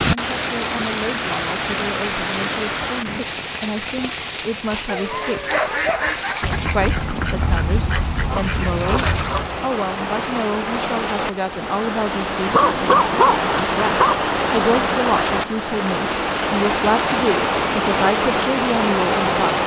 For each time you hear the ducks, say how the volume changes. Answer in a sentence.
You can hear the ducks from 5.2 to 9.7 s, at a steady volume.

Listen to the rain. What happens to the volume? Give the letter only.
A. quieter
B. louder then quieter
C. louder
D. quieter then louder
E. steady
D.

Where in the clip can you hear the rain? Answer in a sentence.
You can hear the rain from 0.0 to 19.6 s.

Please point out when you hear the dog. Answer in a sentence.
The dog can be heard from 4.8 to 6.5 s and from 12.4 to 14.2 s.